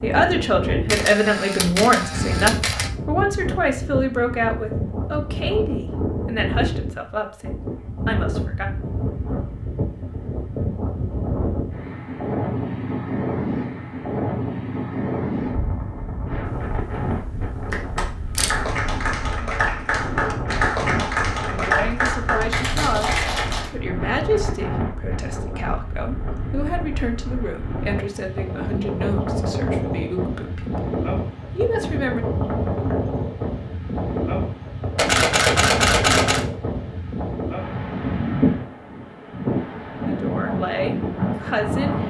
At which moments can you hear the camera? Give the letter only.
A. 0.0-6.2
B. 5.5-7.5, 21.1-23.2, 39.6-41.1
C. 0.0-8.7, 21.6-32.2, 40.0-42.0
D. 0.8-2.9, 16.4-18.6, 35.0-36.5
D.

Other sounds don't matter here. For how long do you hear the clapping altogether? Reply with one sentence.
You can hear the clapping for 6 seconds altogether.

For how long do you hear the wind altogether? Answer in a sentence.
The wind can be heard for 42 seconds in total.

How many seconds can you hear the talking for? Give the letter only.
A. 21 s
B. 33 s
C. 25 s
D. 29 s
A.